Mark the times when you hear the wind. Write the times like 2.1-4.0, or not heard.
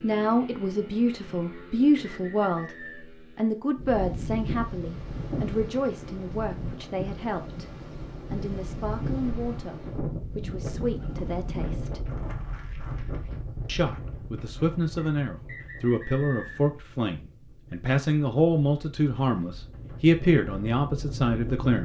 3.8-21.8.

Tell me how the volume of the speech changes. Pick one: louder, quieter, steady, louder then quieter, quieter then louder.
quieter then louder.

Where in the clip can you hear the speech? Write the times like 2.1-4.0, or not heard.
0.0-12.1, 13.7-21.8.